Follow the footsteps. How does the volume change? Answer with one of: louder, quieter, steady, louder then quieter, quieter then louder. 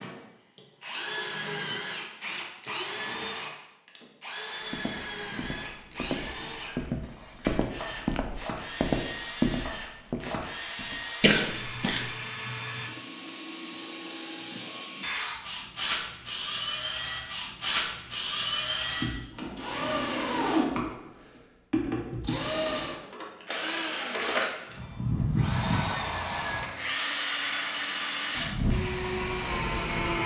louder then quieter.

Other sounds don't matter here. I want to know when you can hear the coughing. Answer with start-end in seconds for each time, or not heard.
11.2-12.1.